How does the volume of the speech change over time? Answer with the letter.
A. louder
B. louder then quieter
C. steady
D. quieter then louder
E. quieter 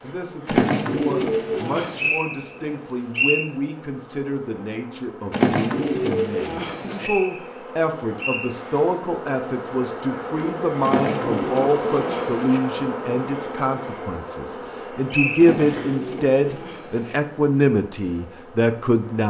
A.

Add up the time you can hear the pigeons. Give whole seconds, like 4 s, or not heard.
7 s.